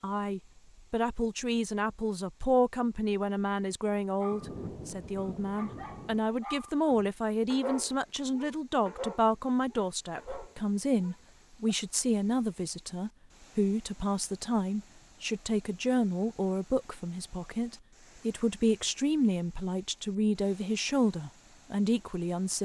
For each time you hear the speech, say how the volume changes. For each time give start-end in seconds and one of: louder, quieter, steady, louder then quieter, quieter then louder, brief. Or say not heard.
0.0-22.6 steady.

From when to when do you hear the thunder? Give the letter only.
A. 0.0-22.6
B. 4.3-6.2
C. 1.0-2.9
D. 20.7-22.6
B.